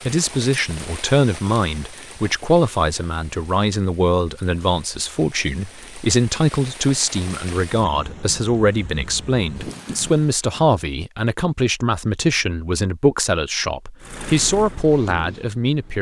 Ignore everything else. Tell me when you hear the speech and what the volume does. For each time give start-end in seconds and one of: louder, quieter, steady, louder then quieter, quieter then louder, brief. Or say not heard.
0.1-15.9 steady.